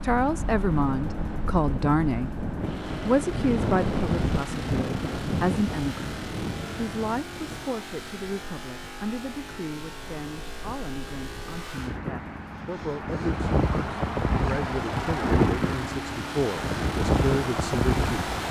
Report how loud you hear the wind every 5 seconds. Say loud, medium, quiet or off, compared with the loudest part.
medium, medium, medium, loud.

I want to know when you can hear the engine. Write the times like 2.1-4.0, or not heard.
0.0-18.4.